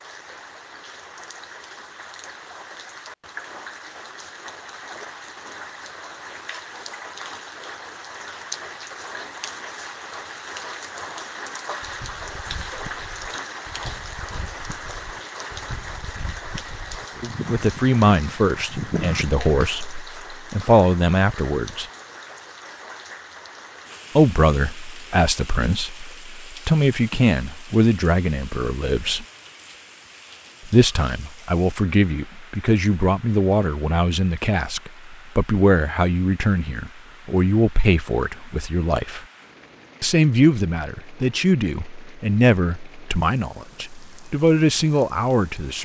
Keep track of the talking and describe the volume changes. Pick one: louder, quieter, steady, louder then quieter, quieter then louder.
steady.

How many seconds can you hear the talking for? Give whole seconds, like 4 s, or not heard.
24 s.